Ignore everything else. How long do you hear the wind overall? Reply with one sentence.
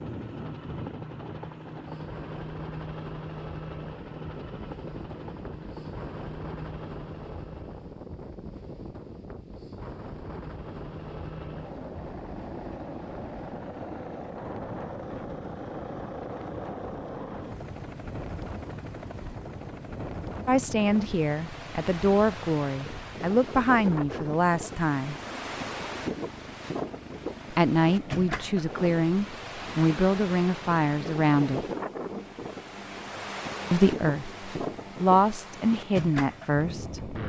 The wind can be heard for 37 seconds in total.